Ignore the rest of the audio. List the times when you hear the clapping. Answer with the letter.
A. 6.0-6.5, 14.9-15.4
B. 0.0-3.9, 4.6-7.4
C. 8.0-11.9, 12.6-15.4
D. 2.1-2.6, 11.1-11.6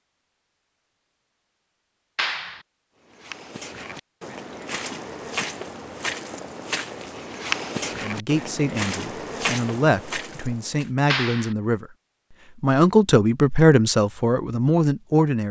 D.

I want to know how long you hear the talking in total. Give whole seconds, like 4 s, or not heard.
7 s.